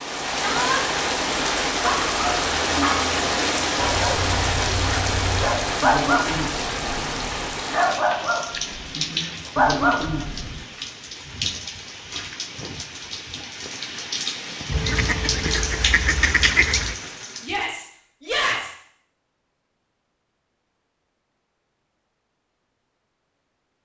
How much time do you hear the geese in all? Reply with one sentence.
The geese can be heard for 2 seconds in total.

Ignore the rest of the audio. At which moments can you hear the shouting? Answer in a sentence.
You can hear the shouting from 0.3 to 0.8 s and from 17.4 to 18.8 s.